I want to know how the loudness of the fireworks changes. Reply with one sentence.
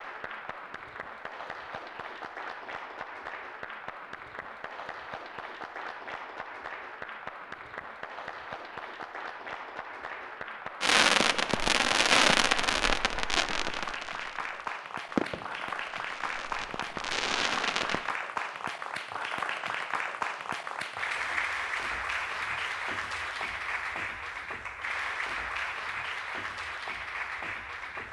The volume of the fireworks goes down, then up.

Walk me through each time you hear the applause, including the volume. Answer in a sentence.
You can hear the applause from 0.0 to 28.0 s, getting louder.